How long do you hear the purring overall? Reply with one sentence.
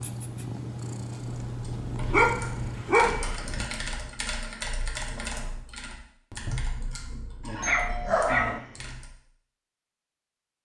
You can hear the purring for 3 seconds altogether.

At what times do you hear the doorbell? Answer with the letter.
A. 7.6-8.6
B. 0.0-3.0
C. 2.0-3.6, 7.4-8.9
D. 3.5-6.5
A.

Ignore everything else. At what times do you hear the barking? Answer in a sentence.
The barking can be heard from 2.0 to 3.6 s and from 7.4 to 8.9 s.